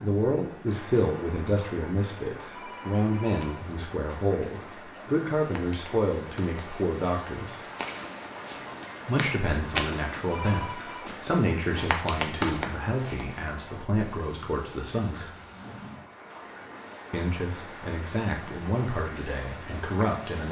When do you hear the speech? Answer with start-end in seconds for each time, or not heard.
0.0-7.5, 9.1-15.2, 17.1-20.4.